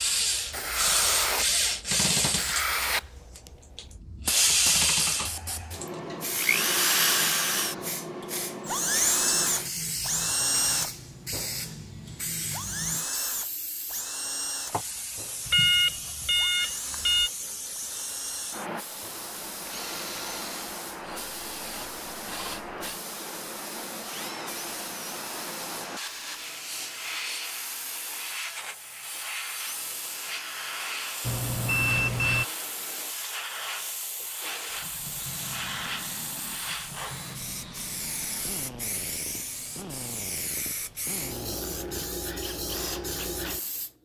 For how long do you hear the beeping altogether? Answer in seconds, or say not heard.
3 s.